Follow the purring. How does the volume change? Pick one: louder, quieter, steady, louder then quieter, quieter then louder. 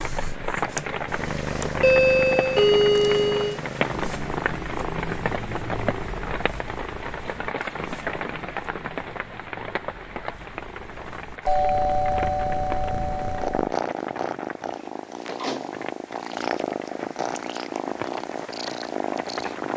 quieter then louder.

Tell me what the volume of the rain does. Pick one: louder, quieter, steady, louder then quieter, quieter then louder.
quieter.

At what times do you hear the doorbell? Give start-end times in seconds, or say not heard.
1.8-3.6, 11.4-13.7.